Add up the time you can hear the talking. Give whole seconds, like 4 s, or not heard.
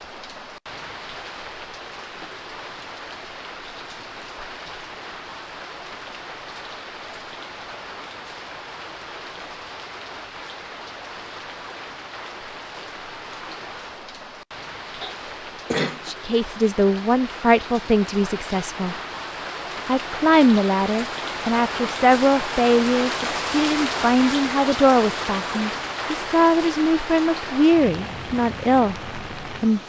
13 s.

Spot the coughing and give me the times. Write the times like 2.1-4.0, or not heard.
15.0-16.0.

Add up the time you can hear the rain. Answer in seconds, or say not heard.
30 s.